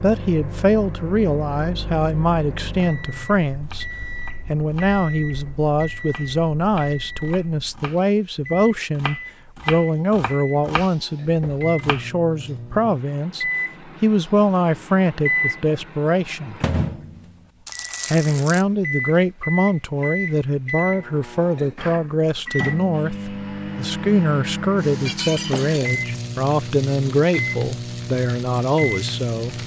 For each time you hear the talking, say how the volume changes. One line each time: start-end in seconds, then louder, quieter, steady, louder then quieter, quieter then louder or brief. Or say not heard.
0.0-16.6 steady
18.1-29.6 steady.